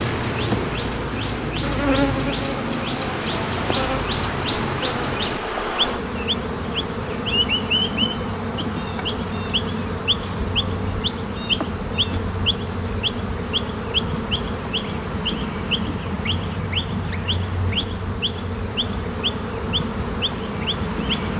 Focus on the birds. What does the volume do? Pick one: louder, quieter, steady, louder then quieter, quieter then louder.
steady.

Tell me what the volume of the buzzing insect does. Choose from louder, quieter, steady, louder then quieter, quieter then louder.
steady.